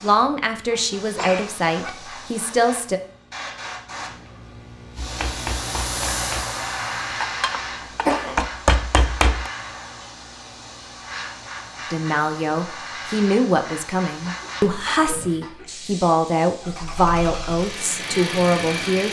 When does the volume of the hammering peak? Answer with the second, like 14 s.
9 s.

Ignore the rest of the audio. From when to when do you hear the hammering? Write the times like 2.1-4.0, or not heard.
5.0-9.5.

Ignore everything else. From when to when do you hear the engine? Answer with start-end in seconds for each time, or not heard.
16.6-19.0.